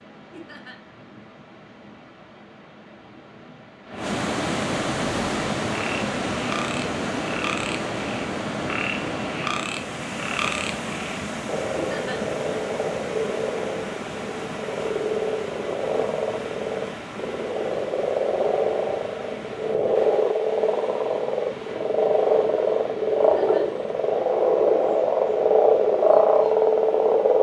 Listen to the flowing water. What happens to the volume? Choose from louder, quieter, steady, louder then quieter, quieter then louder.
quieter.